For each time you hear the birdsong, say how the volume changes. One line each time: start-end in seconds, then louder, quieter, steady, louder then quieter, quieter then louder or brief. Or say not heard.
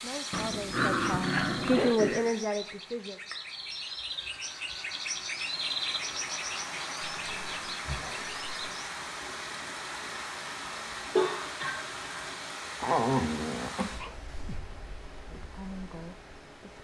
0.0-8.9 louder then quieter.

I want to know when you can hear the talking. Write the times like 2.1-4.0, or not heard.
0.0-3.2, 15.3-16.7.